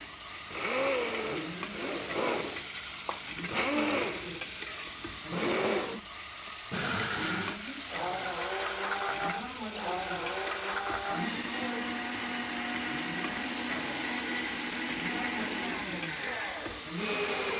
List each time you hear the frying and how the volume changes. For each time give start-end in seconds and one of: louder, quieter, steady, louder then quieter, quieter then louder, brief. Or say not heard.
0.0-17.5 steady.